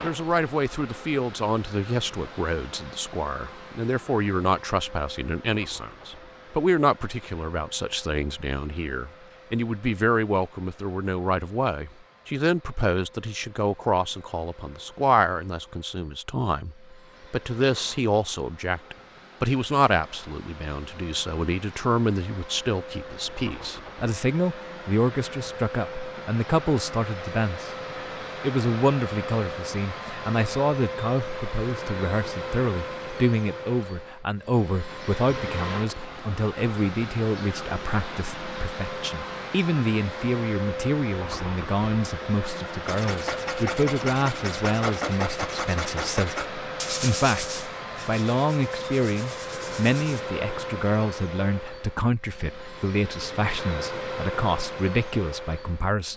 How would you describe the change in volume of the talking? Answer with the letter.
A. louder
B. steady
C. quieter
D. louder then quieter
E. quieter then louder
B.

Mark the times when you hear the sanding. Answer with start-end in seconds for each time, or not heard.
42.9-50.2.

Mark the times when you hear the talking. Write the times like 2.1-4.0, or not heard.
0.0-27.7, 28.4-56.1.